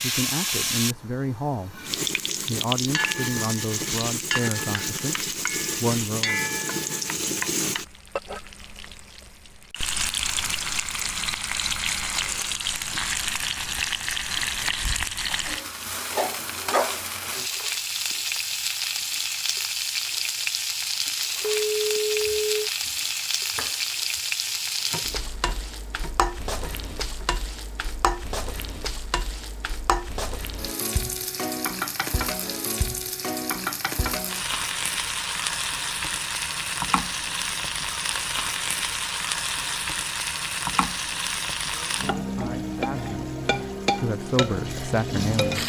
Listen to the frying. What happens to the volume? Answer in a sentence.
The loudness of the frying stays about the same.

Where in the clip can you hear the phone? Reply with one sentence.
The phone can be heard from 21.4 to 22.7 s.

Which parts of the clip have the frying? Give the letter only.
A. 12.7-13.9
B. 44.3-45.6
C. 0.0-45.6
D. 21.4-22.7
C.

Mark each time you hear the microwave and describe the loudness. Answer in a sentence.
The microwave can't be heard in this clip.